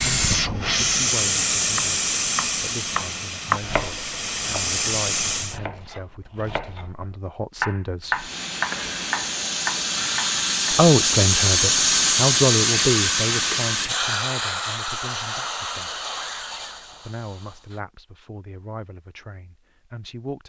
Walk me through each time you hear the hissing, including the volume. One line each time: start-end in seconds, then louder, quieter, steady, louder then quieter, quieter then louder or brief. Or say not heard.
0.0-5.6 quieter then louder
8.1-17.8 louder then quieter.